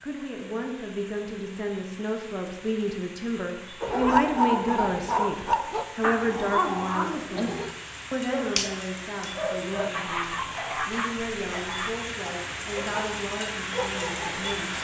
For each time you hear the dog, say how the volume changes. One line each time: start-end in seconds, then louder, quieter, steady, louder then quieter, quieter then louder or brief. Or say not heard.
3.8-14.6 quieter.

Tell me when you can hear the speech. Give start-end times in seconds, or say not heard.
0.0-14.7.